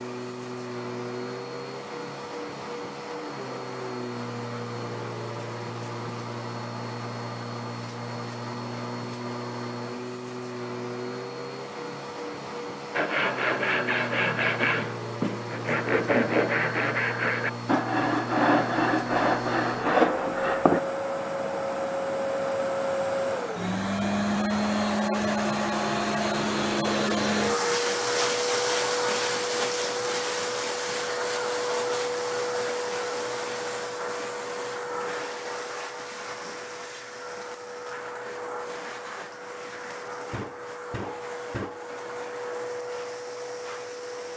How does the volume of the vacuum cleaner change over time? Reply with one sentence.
The volume of the vacuum cleaner goes up, then down.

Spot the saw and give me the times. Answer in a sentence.
The saw can be heard from 12.9 to 20.8 s.